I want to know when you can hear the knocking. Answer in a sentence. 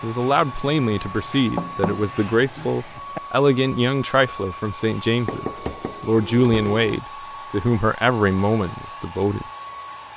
You can hear the knocking from 1.6 to 3.2 s and from 5.2 to 7.0 s.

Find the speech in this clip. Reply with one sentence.
You can hear the speech from 0.0 to 9.4 s.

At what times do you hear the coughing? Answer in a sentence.
You can't hear the coughing here.